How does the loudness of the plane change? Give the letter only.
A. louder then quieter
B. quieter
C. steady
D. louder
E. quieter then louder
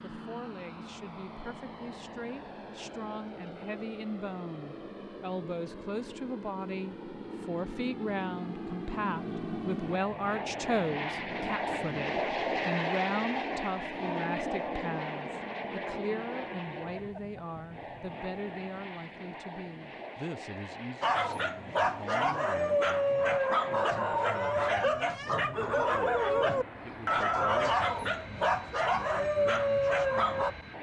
A.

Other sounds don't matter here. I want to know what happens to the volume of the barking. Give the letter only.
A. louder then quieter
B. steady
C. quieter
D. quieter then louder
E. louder
B.